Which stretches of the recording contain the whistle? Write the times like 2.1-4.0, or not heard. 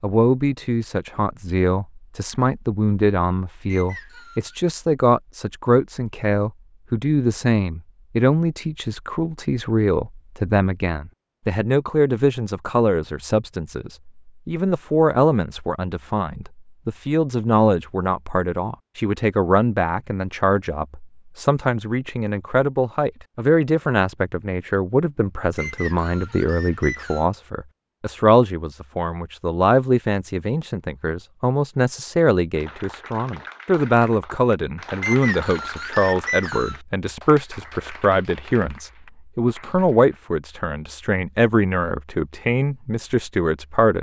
3.6-4.6, 25.6-27.3, 35.0-36.8.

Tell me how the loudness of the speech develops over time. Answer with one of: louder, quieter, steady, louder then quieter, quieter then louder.
steady.